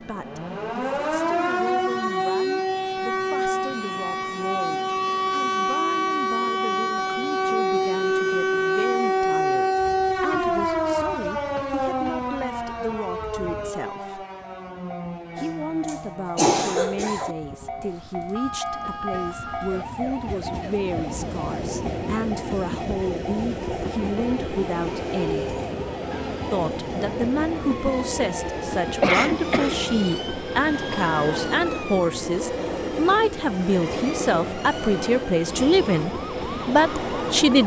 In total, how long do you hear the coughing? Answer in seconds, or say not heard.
3 s.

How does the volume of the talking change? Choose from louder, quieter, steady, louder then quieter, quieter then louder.
louder.